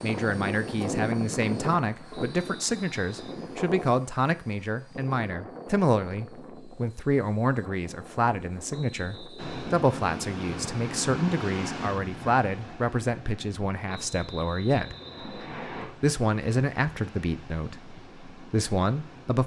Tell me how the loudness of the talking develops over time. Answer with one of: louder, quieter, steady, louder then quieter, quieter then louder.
steady.